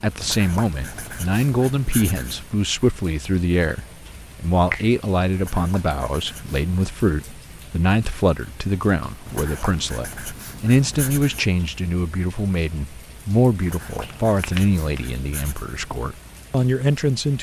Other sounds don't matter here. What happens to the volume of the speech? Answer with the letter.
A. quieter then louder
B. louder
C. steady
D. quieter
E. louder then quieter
C.